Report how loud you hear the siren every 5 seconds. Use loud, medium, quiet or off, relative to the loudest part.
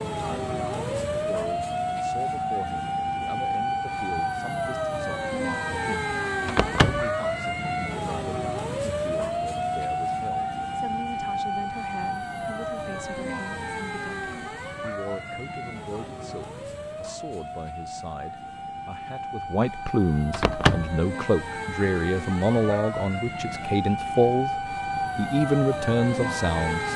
loud, loud, loud, medium, loud, loud.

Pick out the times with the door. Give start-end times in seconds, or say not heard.
6.5-7.1, 20.3-20.9.